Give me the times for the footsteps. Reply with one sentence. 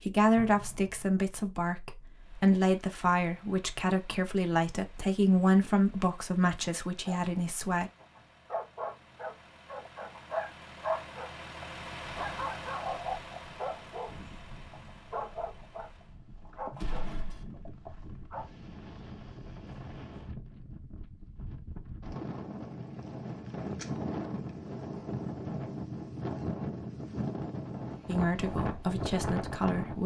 You can't hear the footsteps here.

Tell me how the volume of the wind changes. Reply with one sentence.
The loudness of the wind goes up.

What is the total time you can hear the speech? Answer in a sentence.
You can hear the speech for 10 seconds altogether.